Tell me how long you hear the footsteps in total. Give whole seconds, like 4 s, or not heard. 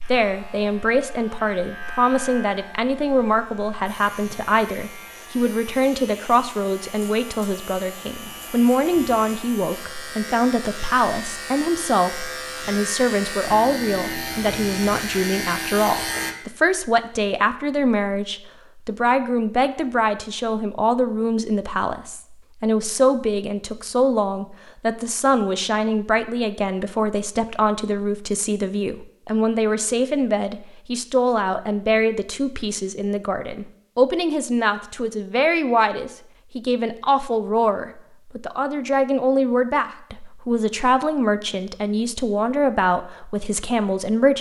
not heard.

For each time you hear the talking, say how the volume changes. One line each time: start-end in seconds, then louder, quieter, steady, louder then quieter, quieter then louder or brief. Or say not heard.
0.1-44.3 steady.